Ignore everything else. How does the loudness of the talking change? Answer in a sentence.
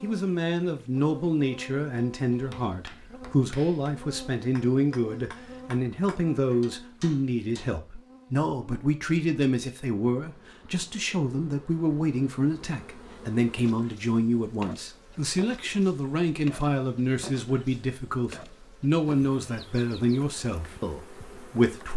The loudness of the talking stays about the same.